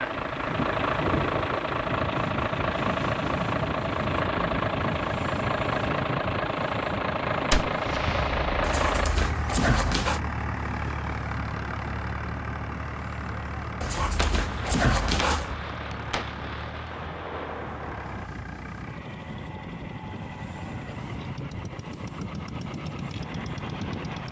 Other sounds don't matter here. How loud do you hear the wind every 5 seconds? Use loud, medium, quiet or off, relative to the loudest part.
loud, loud, medium, medium, medium.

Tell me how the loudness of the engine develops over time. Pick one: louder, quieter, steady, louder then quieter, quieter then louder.
quieter.